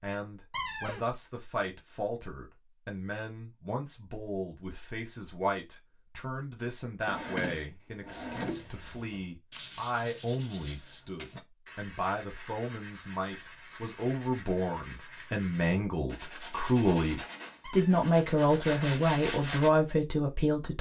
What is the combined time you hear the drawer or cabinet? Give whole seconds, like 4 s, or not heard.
3 s.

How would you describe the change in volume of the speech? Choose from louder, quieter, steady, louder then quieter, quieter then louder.
louder.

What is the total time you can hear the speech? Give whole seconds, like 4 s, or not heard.
21 s.